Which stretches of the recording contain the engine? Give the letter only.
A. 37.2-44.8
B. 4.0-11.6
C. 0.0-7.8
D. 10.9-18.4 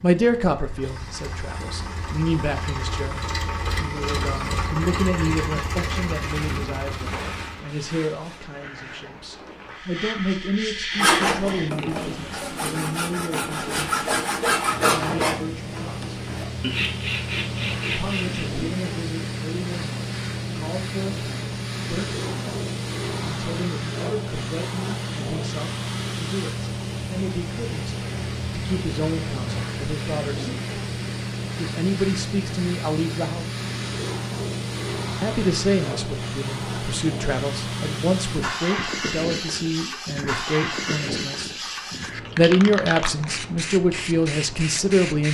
C.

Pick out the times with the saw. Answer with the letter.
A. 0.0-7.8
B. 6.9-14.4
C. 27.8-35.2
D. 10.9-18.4
D.